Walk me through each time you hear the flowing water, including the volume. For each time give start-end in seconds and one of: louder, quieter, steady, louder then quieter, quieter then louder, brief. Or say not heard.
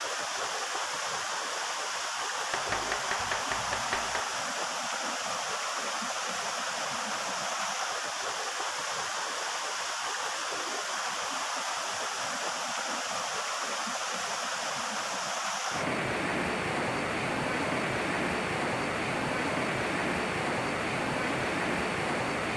0.0-22.5 steady.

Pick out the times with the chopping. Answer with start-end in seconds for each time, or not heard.
2.5-4.4.